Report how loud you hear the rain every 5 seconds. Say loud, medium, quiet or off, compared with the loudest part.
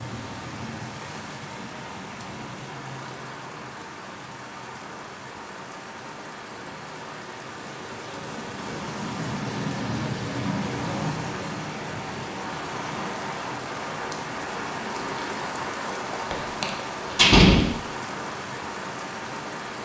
medium, loud, loud, loud.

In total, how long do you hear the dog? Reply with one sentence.
You can't hear the dog here.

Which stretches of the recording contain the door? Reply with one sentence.
The door can be heard from 16.3 to 17.7 s.